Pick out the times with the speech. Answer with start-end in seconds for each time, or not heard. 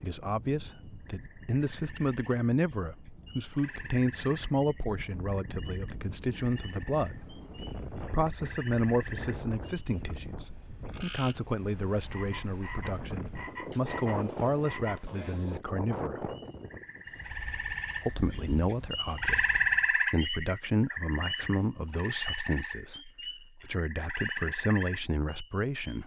0.0-16.3, 18.0-26.0.